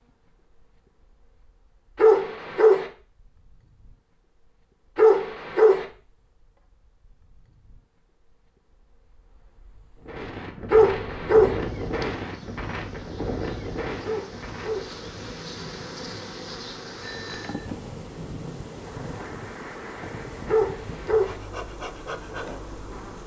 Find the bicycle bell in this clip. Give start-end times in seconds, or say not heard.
17.0-17.6.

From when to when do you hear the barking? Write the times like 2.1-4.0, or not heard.
1.9-2.9, 5.0-5.8, 10.7-11.6, 14.0-14.9, 20.4-21.4.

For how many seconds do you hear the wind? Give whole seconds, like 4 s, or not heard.
13 s.